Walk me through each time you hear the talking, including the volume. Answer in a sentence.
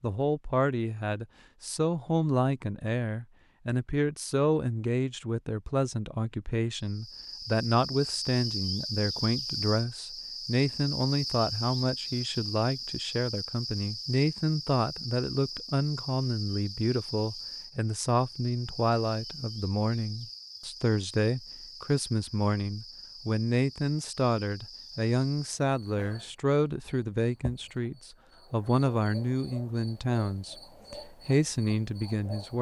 You can hear the talking from 0.0 to 32.5 s, at a steady volume.